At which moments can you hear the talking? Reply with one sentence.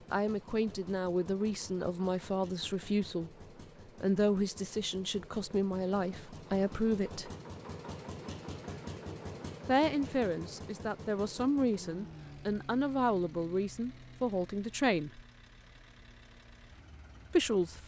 The talking can be heard from 0.1 to 3.3 s, from 4.0 to 7.3 s, from 9.7 to 15.2 s and from 17.3 to 17.8 s.